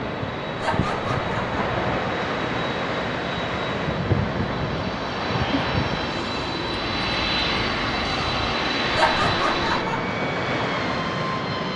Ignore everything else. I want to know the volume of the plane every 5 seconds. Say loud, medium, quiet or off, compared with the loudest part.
medium, loud, medium.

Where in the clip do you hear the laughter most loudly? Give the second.
9 s.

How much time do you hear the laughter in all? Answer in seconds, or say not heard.
2 s.